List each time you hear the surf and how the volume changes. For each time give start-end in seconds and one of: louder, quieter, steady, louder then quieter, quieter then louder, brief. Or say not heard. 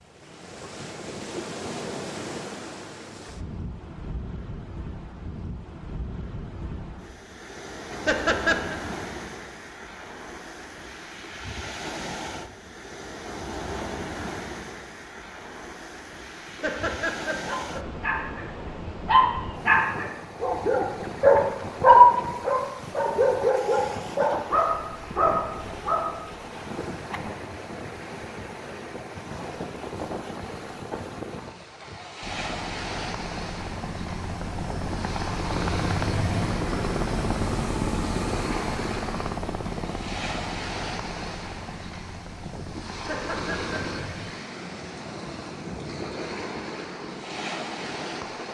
0.0-48.4 steady.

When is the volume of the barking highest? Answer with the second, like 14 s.
22 s.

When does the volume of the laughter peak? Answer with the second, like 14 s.
8 s.